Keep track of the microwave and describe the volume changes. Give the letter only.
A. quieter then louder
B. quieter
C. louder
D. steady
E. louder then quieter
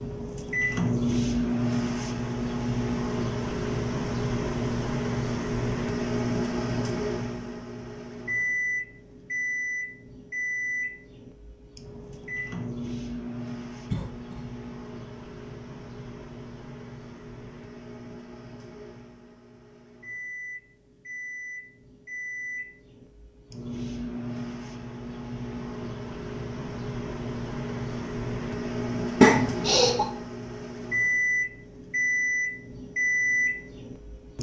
A.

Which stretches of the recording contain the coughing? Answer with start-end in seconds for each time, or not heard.
13.9-14.4, 29.2-30.1.